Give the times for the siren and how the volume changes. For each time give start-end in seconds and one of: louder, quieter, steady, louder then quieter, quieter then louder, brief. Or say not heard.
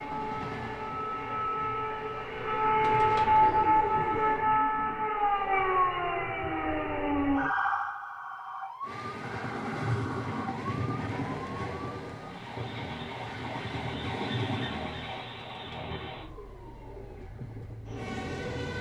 0.0-18.7 quieter.